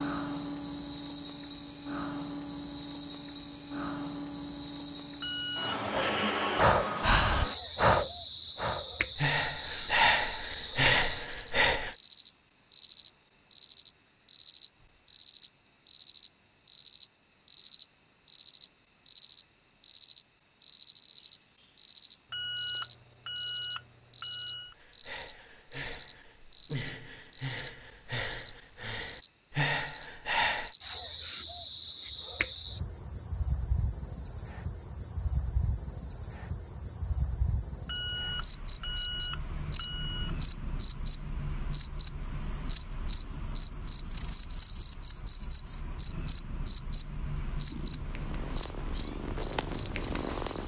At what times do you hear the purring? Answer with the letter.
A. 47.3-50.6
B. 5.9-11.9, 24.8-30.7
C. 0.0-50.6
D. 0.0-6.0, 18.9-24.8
A.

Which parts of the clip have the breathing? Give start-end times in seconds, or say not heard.
5.9-11.9, 24.8-30.7.